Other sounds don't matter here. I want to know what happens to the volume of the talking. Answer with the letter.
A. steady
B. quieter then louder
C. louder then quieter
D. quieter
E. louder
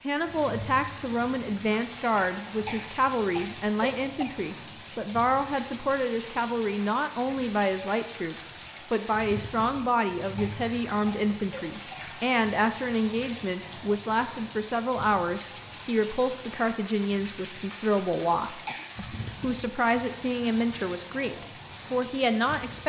A.